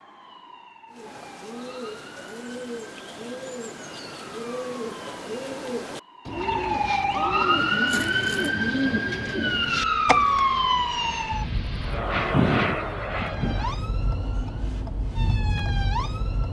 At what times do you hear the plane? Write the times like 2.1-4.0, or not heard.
7.2-13.9.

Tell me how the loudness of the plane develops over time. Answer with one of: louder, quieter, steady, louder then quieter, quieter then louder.
louder.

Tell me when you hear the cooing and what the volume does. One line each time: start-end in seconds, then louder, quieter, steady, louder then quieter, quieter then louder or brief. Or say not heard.
0.9-10.4 louder.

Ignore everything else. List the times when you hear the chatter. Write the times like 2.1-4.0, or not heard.
not heard.